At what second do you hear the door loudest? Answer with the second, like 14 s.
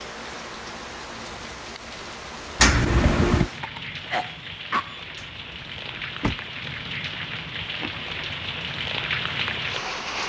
3 s.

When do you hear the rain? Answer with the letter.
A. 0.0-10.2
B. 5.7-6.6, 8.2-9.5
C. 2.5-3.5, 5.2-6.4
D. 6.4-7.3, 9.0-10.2
A.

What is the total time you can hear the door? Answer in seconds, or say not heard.
2 s.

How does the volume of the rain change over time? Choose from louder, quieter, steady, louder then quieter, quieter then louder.
louder.